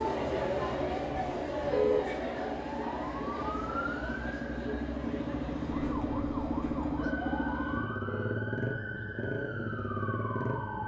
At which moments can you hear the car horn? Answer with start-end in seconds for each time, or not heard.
1.6-2.1, 8.0-8.5.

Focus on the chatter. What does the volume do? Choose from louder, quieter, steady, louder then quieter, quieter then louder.
quieter.